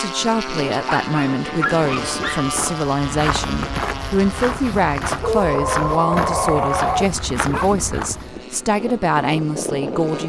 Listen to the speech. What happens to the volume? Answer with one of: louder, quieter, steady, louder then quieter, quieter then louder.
steady.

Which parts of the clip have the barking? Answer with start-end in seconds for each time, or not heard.
0.8-2.5, 5.2-7.7.